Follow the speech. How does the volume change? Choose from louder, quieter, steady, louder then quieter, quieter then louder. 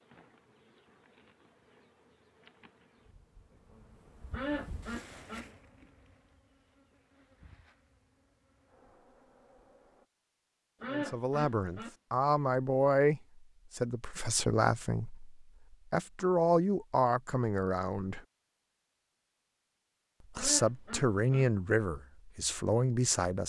steady.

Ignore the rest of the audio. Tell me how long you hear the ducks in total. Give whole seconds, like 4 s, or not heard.
3 s.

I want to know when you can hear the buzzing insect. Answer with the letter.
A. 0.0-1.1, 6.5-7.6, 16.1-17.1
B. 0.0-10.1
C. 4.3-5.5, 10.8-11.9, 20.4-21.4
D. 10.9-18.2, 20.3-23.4
B.